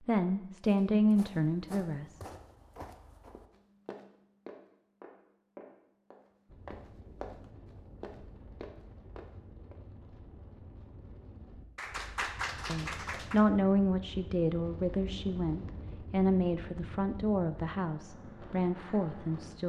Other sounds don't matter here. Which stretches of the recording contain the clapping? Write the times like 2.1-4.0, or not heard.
11.8-13.4.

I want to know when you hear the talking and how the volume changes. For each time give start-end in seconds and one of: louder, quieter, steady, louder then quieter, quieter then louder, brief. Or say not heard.
0.1-2.2 brief
12.7-19.6 quieter.